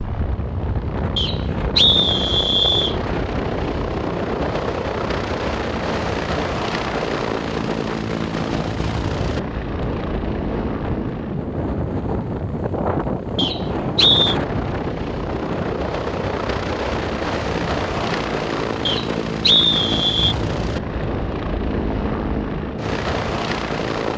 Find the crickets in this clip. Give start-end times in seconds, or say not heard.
not heard.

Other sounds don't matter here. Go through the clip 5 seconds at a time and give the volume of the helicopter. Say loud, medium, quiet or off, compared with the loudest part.
loud, loud, medium, loud, loud.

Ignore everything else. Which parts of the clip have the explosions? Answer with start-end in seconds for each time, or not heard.
not heard.